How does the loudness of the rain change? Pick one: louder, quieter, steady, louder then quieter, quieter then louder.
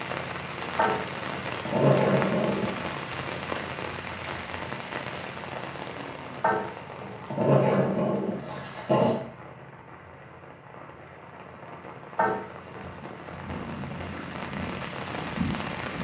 quieter then louder.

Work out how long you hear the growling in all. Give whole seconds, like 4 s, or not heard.
6 s.